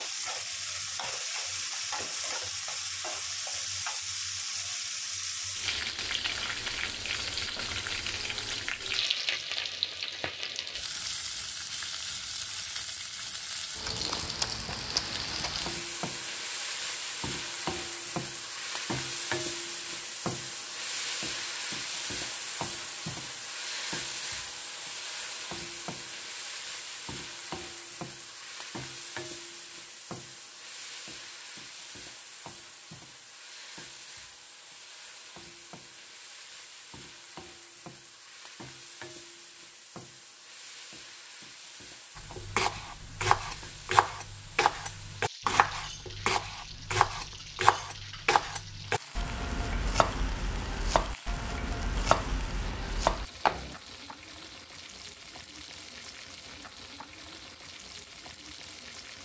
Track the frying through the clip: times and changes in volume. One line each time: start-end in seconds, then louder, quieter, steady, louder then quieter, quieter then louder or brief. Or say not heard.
0.0-59.1 quieter.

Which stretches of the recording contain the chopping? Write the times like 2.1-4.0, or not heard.
42.1-53.8.